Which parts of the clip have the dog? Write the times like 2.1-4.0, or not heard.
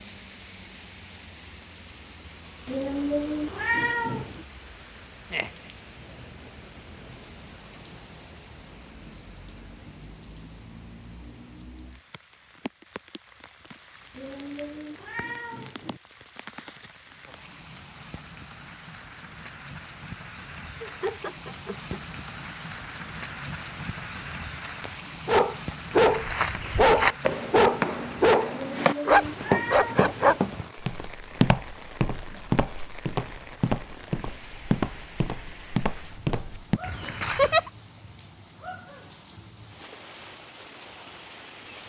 25.2-30.4.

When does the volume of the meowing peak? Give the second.
4 s.